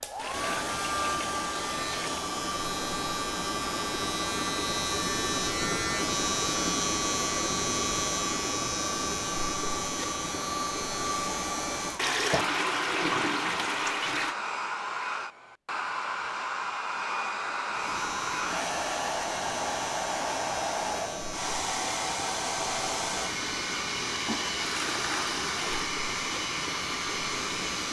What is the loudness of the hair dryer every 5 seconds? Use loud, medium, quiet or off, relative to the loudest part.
loud, medium, loud, loud, loud, loud.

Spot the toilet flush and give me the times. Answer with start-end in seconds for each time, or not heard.
0.1-2.2, 11.9-14.3, 24.2-25.9.